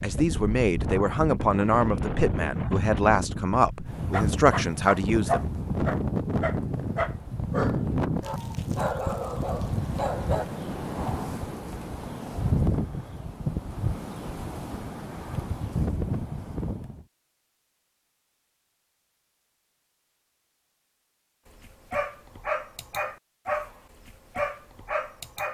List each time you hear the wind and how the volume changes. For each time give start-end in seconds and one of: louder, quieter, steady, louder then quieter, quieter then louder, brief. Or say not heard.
0.0-17.1 steady.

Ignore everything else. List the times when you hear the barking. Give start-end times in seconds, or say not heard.
4.1-10.4, 21.6-25.4.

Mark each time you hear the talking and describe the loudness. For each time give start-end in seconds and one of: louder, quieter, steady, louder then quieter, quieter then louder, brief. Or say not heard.
0.0-5.5 steady.